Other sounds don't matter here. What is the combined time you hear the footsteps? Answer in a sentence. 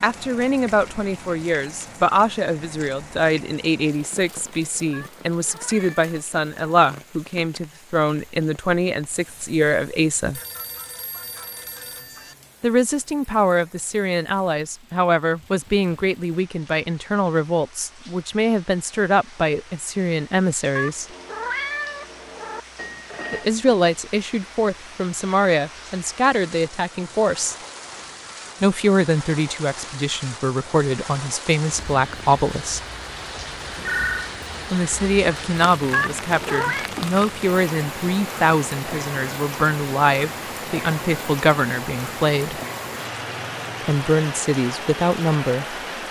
You can't hear the footsteps here.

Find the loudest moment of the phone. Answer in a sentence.
The volume of the phone peaks at 34 seconds.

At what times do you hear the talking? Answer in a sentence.
You can hear the talking from 0.0 to 10.4 s, from 12.6 to 21.1 s, from 23.3 to 27.6 s, from 28.6 to 32.8 s, from 34.7 to 42.6 s and from 43.8 to 45.8 s.